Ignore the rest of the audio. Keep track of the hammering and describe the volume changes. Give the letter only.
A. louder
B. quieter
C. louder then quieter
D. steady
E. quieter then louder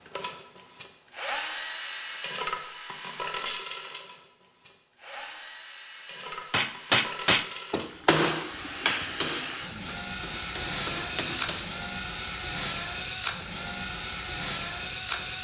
E.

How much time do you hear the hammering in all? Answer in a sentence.
The hammering can be heard for 5 seconds in total.